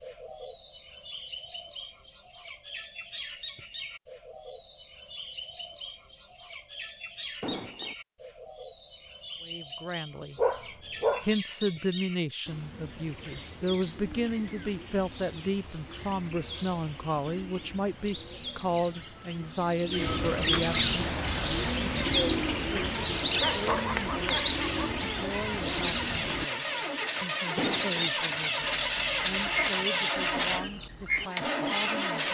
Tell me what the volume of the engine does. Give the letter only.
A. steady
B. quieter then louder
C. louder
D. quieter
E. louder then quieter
C.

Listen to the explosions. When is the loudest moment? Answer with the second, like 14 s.
28 s.